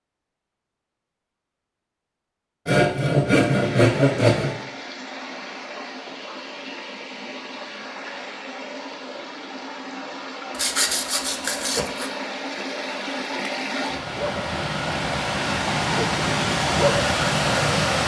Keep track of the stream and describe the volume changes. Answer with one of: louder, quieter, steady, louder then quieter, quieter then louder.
louder.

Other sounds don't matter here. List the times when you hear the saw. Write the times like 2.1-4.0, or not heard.
2.6-4.7, 10.6-12.1.